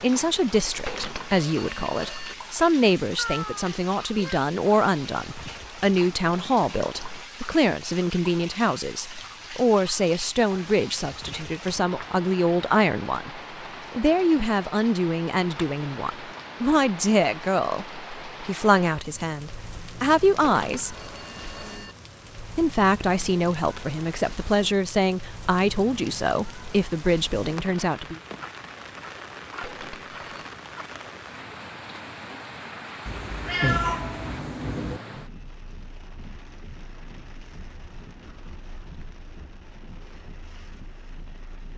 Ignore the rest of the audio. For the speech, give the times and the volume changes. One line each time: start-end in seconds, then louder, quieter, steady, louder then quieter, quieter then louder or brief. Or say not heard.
0.0-20.9 steady
22.6-28.2 steady.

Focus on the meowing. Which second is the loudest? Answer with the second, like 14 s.
34 s.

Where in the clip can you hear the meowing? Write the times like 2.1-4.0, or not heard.
3.1-4.4, 33.0-35.0.